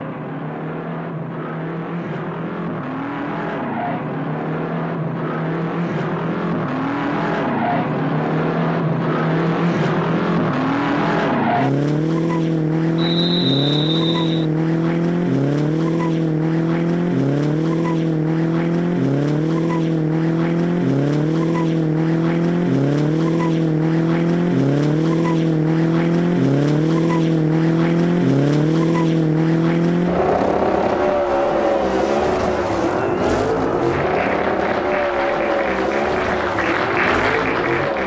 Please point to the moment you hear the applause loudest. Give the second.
37 s.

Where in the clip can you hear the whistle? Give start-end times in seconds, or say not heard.
12.9-14.4.